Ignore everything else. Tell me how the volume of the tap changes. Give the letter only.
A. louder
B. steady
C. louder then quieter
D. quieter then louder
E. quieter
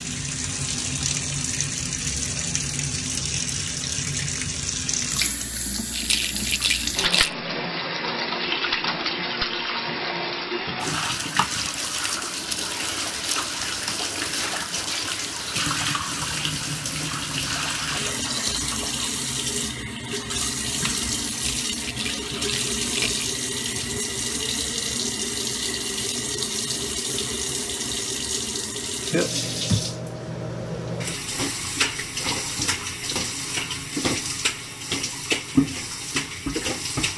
B.